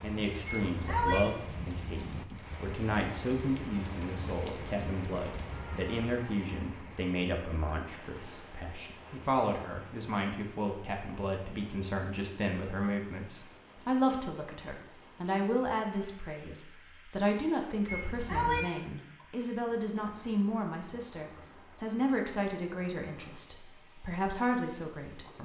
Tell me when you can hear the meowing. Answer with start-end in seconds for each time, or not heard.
0.7-1.2, 17.9-18.6.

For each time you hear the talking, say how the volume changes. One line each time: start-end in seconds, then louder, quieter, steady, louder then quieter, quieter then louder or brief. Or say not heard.
0.0-25.4 steady.